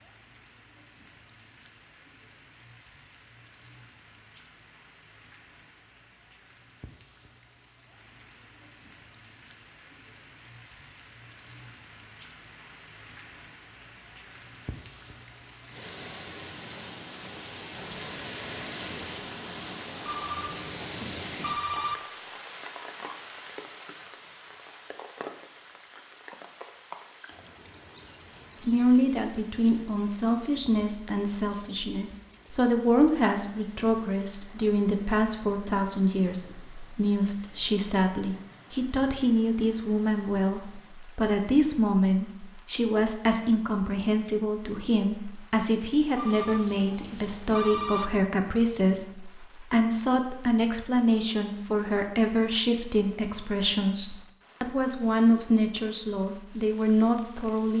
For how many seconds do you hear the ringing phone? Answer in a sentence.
The ringing phone can be heard for 4 seconds in total.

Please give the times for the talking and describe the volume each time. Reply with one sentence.
The talking can be heard from 28.6 to 57.7 s, at a steady volume.